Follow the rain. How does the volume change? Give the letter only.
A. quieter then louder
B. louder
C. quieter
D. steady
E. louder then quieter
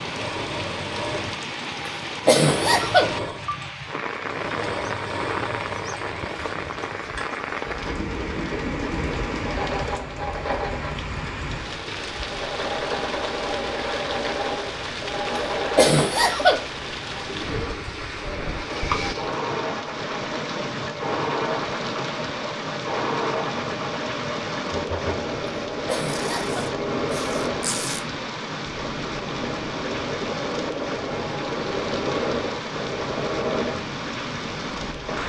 D.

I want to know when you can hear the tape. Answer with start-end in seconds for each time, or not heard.
26.1-28.0.